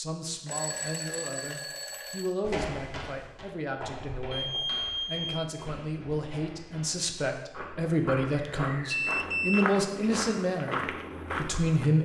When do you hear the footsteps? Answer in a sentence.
The footsteps can be heard from 2.4 to 11.9 s.